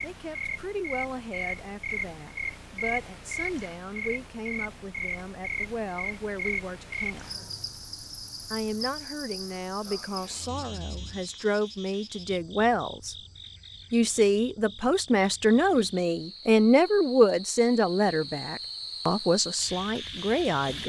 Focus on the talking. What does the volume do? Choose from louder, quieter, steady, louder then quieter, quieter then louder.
louder.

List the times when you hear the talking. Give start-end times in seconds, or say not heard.
0.0-7.3, 8.5-13.2, 13.9-20.8.